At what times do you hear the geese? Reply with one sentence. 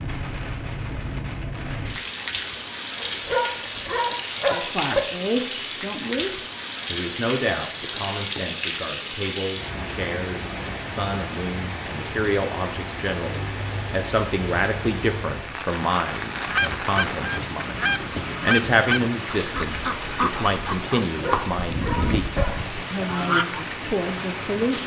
You can hear the geese from 16.4 to 23.6 s.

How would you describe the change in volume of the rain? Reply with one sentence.
The loudness of the rain stays about the same.